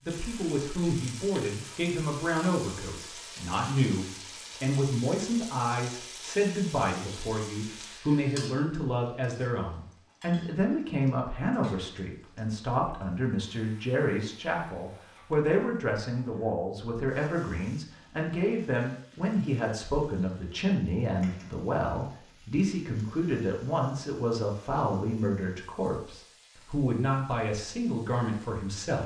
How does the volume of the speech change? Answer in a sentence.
The loudness of the speech stays about the same.